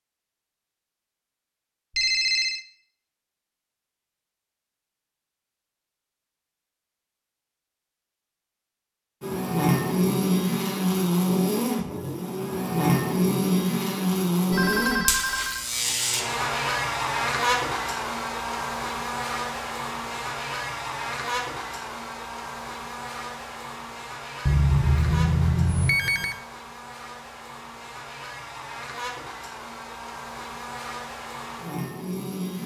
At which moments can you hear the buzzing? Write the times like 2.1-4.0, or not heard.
9.2-32.6.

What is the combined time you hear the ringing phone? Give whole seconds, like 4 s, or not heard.
4 s.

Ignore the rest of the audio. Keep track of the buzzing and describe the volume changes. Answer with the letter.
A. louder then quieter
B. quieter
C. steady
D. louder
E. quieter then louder
B.